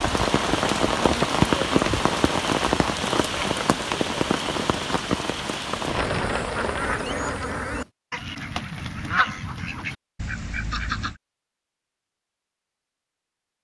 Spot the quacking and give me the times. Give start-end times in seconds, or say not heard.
5.9-11.2.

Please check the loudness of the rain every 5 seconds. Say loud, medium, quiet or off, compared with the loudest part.
loud, medium, off.